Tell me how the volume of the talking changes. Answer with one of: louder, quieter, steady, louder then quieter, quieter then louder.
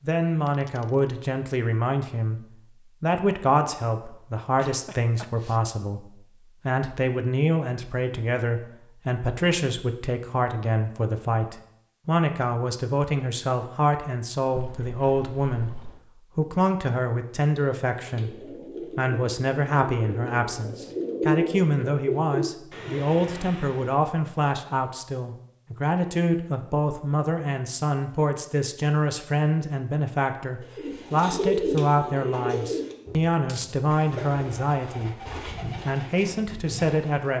steady.